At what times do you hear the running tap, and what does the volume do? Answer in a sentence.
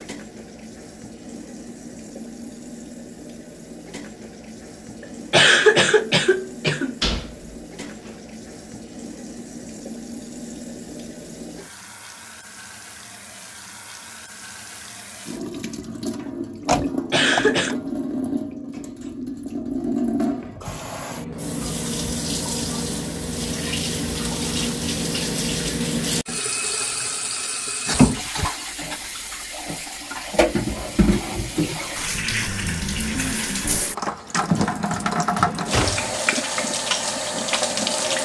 The running tap can be heard from 0.0 to 38.2 s, getting louder.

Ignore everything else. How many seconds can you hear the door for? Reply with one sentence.
The door can be heard for 4 seconds in total.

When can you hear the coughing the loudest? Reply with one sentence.
The volume of the coughing peaks at 6 seconds.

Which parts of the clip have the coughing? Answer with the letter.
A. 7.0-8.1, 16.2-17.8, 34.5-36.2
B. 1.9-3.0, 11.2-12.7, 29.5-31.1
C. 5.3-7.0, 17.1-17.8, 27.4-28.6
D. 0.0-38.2
C.